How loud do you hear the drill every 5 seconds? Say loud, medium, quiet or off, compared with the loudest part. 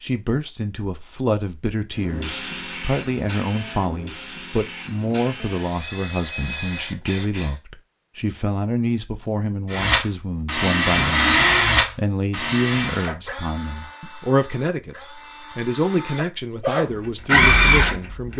quiet, medium, loud, loud.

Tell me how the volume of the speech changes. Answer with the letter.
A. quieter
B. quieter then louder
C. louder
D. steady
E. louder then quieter
D.